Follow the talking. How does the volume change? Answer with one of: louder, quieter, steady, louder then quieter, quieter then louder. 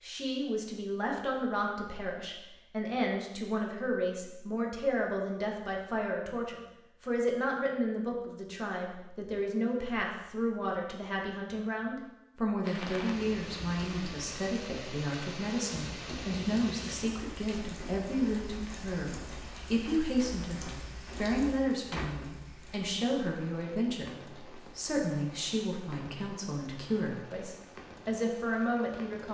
steady.